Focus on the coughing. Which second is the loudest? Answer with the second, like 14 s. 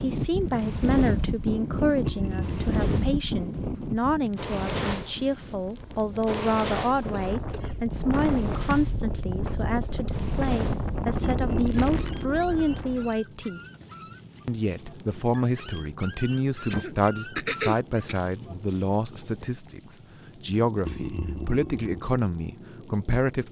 18 s.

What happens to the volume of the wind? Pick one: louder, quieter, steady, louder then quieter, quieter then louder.
quieter then louder.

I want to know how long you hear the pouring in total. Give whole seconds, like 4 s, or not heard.
3 s.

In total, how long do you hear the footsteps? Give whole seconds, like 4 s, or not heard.
not heard.